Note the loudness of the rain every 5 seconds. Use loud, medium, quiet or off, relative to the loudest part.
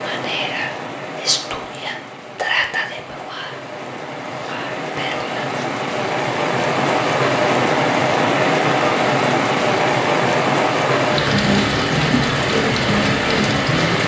quiet, loud, loud.